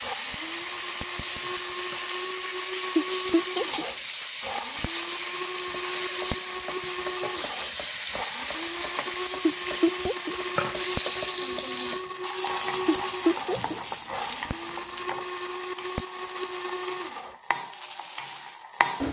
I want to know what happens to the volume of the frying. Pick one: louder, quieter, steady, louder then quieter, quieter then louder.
quieter.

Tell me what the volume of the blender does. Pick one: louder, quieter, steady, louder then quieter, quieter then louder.
steady.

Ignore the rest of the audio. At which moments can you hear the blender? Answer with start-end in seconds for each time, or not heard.
0.0-17.4.